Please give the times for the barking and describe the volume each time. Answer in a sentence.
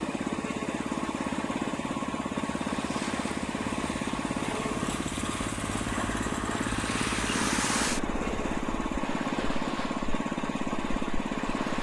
You can't hear the barking here.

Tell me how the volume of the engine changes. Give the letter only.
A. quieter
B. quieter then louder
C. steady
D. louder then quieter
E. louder
C.